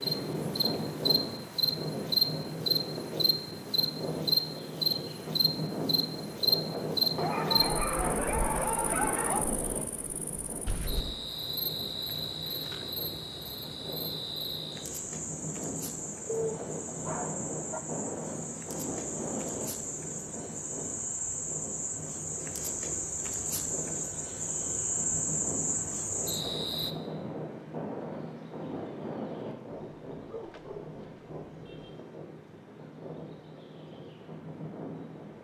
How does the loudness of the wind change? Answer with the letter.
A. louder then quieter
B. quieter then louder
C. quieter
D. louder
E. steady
C.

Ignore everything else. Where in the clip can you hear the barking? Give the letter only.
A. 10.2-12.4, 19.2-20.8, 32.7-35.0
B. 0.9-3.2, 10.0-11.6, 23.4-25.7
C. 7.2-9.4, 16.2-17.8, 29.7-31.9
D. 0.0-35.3
C.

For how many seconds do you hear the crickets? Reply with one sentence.
The crickets can be heard for 27 seconds in total.